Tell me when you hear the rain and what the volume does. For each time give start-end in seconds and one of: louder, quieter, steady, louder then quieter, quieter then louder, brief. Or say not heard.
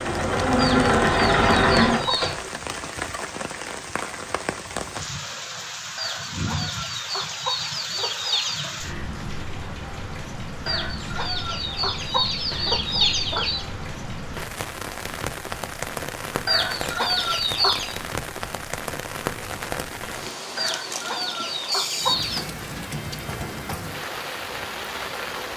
0.0-25.5 steady.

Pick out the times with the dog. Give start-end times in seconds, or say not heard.
not heard.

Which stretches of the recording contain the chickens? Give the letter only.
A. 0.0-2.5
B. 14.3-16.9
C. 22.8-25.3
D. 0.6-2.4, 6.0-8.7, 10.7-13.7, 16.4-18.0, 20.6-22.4
D.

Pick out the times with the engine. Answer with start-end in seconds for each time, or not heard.
0.0-2.5.